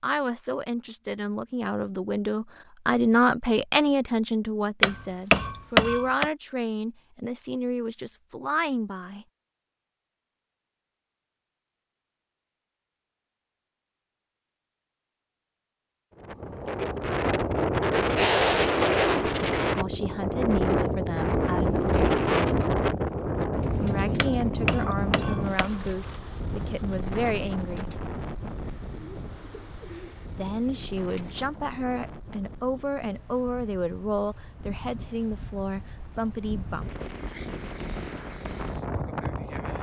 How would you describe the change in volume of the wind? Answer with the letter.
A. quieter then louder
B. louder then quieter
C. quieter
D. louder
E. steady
A.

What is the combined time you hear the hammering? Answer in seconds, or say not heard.
3 s.